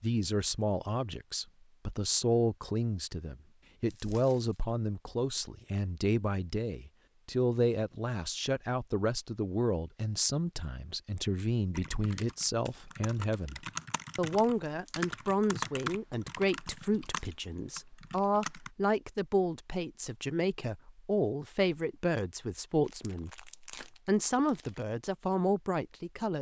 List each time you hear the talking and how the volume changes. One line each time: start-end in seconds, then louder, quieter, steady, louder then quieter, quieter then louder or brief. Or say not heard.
0.0-26.3 steady.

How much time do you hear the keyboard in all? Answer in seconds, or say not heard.
7 s.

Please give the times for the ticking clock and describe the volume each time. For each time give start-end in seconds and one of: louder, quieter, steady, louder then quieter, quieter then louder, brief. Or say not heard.
not heard.